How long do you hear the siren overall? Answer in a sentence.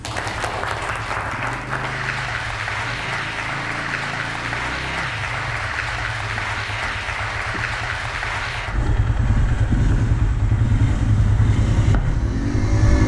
The siren can't be heard in this clip.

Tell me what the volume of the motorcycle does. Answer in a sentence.
The volume of the motorcycle goes up.